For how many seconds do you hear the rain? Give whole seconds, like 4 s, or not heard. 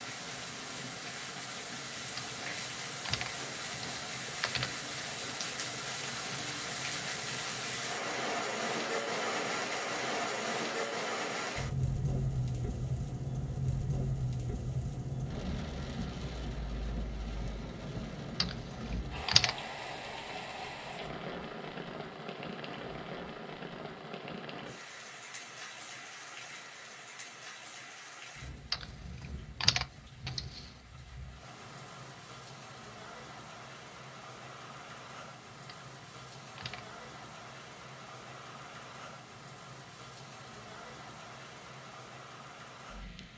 43 s.